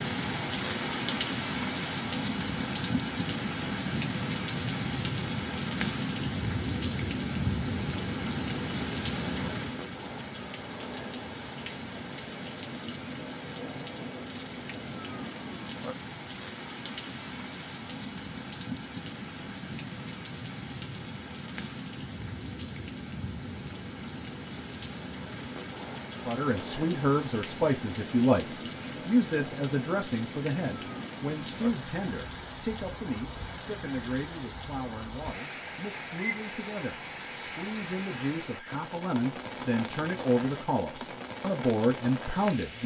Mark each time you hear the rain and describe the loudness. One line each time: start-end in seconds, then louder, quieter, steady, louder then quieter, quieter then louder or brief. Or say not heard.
0.0-42.8 quieter.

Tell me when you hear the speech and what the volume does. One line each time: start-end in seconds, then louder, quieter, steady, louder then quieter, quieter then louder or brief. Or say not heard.
26.2-42.8 quieter then louder.